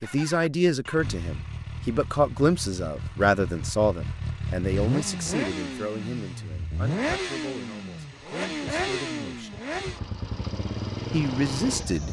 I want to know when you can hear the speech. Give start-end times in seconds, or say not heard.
0.0-9.5, 11.1-12.0.